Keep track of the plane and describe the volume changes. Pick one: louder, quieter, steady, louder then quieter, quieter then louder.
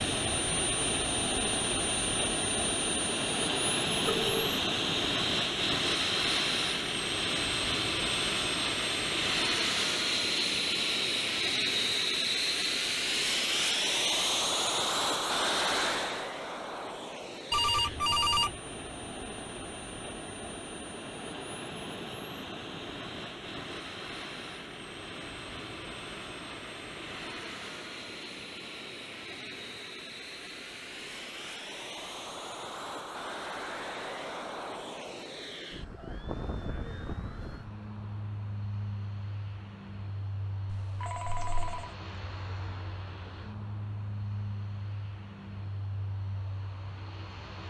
quieter.